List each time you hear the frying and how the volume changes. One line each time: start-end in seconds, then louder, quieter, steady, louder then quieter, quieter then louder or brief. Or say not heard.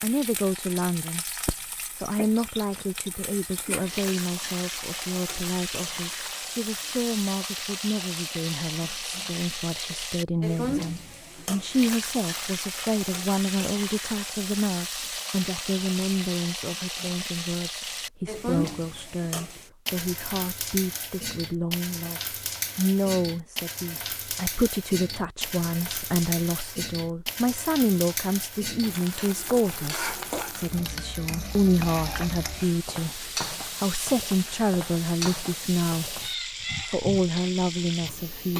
0.0-38.5 steady.